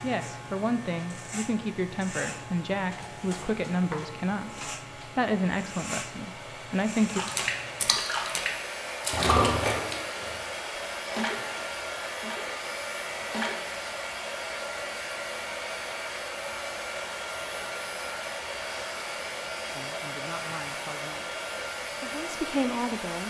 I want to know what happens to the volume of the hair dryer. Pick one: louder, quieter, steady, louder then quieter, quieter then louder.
louder.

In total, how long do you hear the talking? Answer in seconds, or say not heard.
10 s.